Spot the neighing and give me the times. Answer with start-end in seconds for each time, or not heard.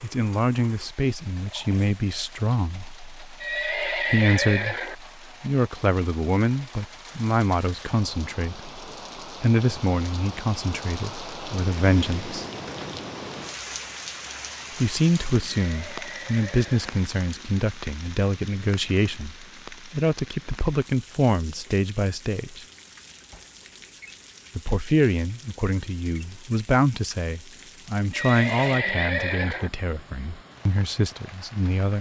3.4-5.0, 15.5-16.9, 28.1-29.7.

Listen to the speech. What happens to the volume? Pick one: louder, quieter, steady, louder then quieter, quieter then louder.
steady.